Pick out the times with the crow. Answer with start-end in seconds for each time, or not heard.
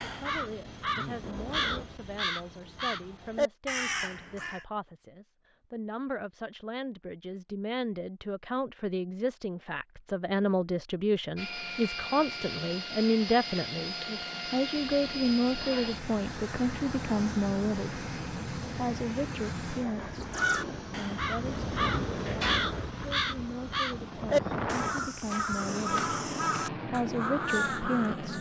0.0-4.7, 20.3-28.3.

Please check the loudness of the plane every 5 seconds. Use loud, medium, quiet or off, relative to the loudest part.
off, off, loud, loud, loud, loud.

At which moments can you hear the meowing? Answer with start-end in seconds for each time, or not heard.
1.2-1.9, 14.8-15.9, 21.4-22.9.